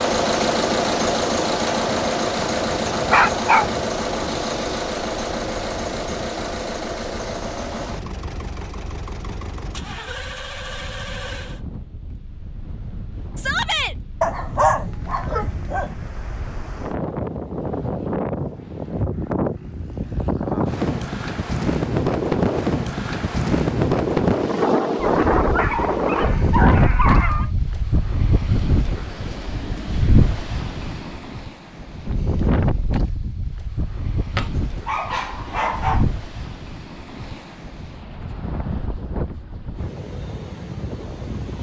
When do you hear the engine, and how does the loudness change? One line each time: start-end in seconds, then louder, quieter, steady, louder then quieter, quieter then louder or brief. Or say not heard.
0.0-11.6 quieter.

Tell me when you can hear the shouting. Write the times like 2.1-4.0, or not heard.
13.3-13.9.